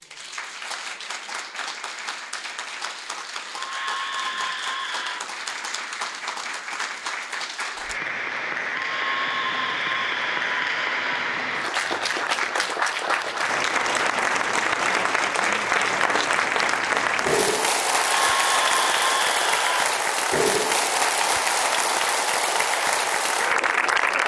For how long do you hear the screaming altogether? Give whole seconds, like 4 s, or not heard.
6 s.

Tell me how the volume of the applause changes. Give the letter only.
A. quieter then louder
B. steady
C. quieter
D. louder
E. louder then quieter
D.